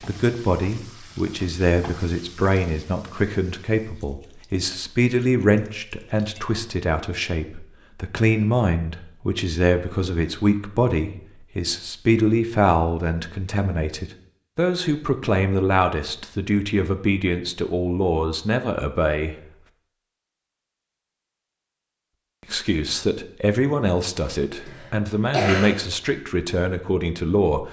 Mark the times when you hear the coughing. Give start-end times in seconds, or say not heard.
24.2-25.8.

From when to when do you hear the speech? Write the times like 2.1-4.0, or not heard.
0.0-19.4, 22.5-27.6.